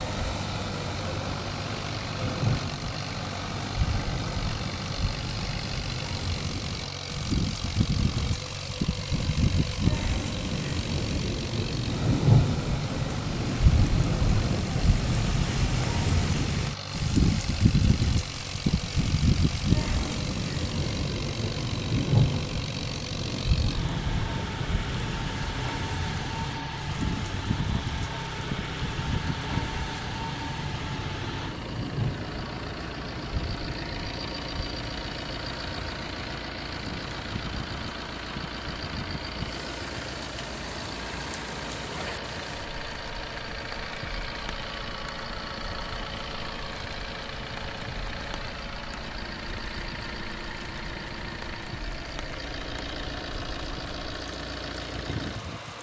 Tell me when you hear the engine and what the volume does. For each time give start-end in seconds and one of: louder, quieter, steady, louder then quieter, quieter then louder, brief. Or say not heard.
0.0-55.7 steady.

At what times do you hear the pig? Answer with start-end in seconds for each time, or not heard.
not heard.